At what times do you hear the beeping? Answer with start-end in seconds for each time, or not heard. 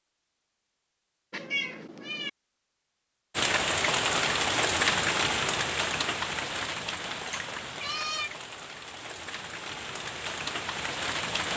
not heard.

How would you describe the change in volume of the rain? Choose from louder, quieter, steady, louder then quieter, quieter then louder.
quieter then louder.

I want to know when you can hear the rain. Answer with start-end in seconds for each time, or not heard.
3.3-11.5.